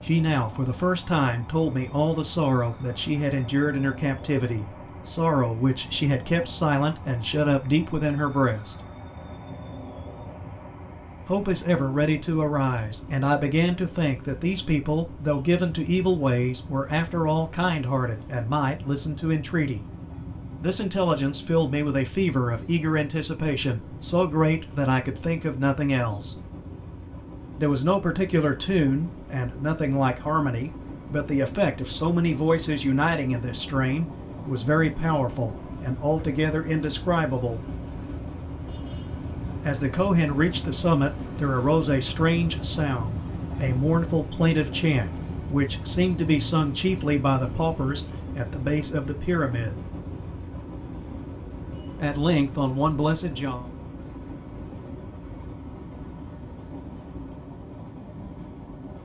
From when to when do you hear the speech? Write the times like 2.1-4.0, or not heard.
0.0-8.8, 11.2-19.9, 20.6-26.4, 27.6-37.6, 39.6-49.8, 52.0-53.6.